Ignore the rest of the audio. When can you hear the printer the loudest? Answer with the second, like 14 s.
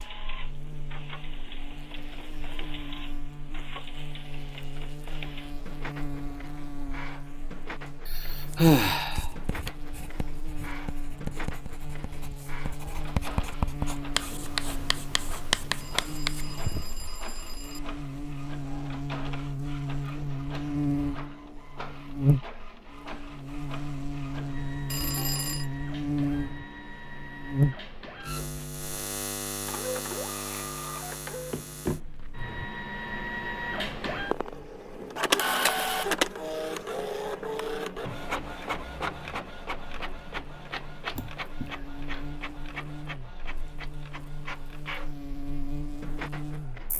36 s.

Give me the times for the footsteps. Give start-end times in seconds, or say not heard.
not heard.